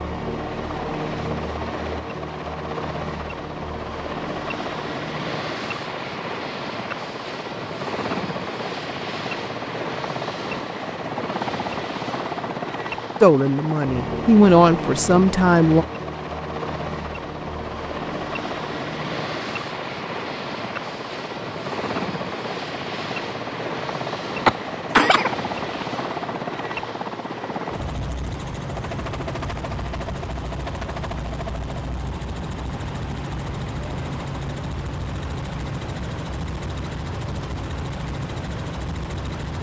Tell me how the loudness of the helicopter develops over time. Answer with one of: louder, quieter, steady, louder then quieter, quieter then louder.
steady.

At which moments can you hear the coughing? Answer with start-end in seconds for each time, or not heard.
24.4-25.9.